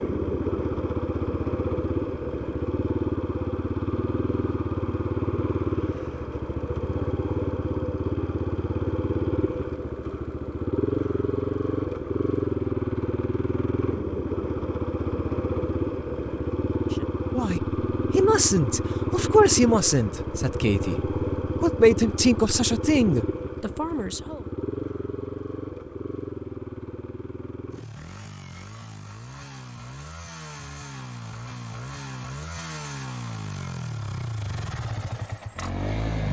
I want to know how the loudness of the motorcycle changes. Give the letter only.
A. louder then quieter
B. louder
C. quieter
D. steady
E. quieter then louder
C.